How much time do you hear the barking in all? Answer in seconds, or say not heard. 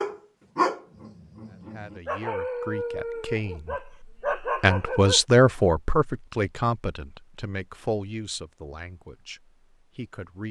5 s.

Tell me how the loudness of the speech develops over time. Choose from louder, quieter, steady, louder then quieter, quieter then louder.
louder then quieter.